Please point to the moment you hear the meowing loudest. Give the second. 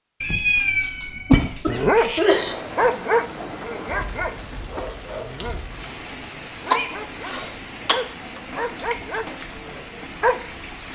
1 s.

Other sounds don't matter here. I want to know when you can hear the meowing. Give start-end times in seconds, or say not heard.
0.2-2.2.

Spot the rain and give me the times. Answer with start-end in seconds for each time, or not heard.
2.3-10.8.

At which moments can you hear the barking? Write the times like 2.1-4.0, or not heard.
1.6-10.4.